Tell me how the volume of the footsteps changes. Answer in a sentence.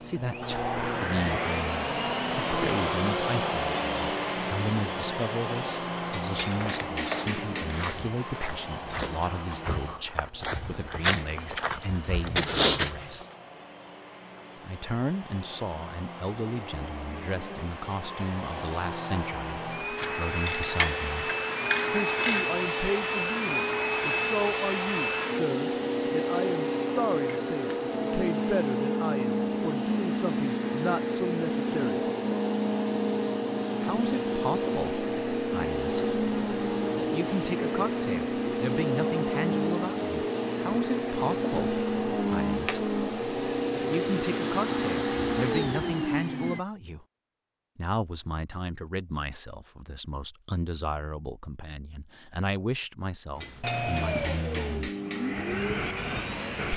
The loudness of the footsteps goes up.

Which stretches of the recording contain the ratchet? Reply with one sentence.
You can hear the ratchet from 19.9 to 22.5 s.